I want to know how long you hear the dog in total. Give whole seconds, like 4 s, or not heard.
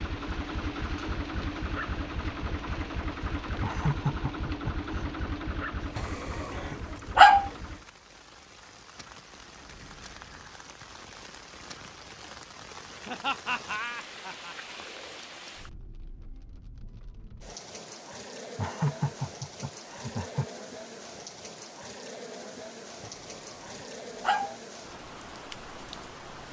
3 s.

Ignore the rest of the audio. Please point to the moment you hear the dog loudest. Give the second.
7 s.